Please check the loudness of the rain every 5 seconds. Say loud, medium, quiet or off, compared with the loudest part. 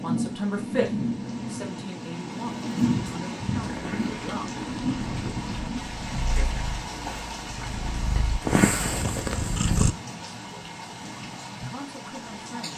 loud, medium, medium.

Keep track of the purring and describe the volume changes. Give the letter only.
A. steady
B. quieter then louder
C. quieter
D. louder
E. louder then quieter
D.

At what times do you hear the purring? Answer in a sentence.
You can hear the purring from 3.5 to 9.9 s.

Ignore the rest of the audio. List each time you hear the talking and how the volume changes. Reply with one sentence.
You can hear the talking from 0.0 to 4.5 s, getting quieter; and briefly from 11.7 to 12.7 s.